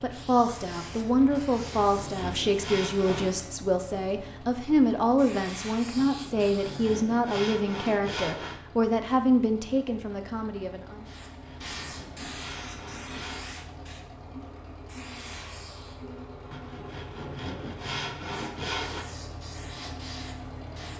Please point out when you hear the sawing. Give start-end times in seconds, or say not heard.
1.3-3.4, 6.0-8.6, 11.0-13.6, 16.5-19.1.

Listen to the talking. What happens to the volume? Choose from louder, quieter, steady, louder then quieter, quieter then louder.
steady.